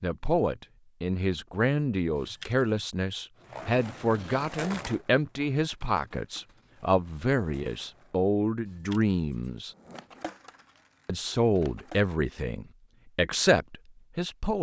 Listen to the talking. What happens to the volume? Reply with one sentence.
The volume of the talking stays about the same.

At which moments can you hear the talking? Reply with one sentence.
You can hear the talking from 0.0 to 9.8 s and from 11.1 to 14.5 s.